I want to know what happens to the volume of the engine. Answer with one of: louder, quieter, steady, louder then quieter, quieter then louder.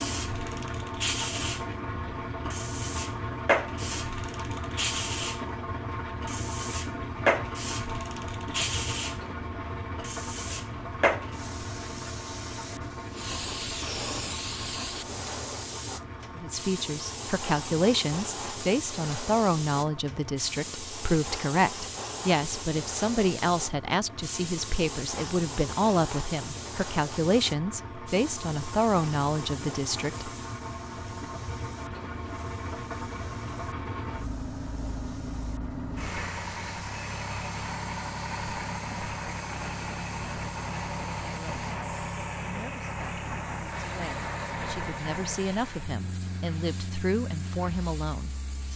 quieter then louder.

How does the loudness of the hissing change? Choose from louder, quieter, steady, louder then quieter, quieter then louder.
quieter.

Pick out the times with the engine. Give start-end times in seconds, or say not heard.
0.0-48.7.